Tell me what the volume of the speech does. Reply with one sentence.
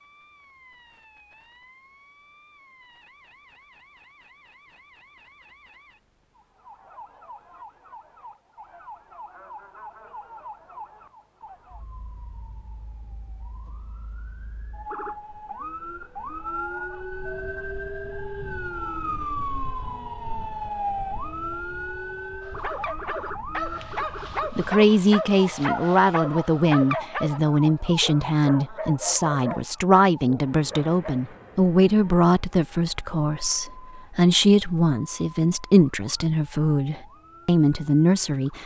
The loudness of the speech stays about the same.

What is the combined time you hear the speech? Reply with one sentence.
The speech can be heard for 14 seconds in total.